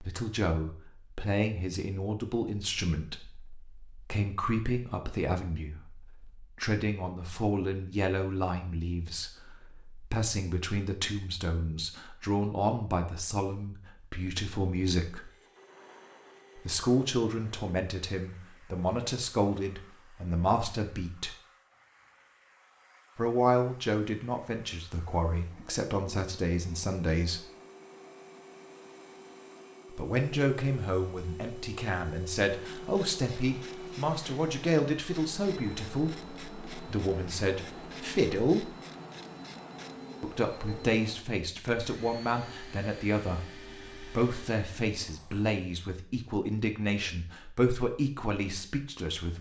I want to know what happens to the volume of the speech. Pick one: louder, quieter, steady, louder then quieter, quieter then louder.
steady.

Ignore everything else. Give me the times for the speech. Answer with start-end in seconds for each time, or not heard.
0.0-15.3, 16.6-21.4, 23.1-27.4, 29.9-38.8, 40.2-49.3.